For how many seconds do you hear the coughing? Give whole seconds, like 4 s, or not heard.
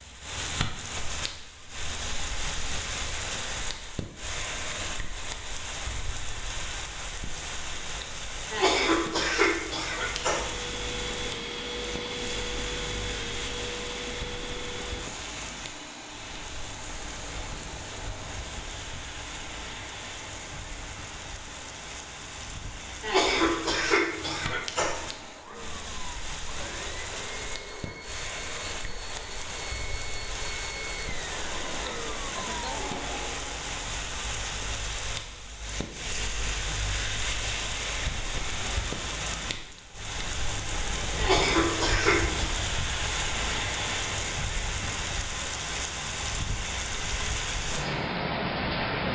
5 s.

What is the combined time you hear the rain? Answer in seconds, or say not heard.
49 s.